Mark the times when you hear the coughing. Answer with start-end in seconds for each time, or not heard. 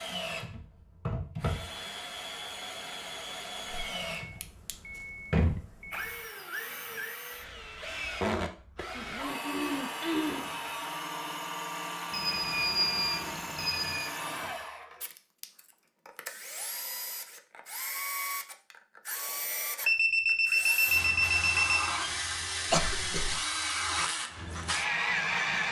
8.9-10.4, 22.7-23.4.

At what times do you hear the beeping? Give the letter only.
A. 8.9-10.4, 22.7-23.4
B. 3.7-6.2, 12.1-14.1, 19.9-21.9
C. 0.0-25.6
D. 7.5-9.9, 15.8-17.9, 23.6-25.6
B.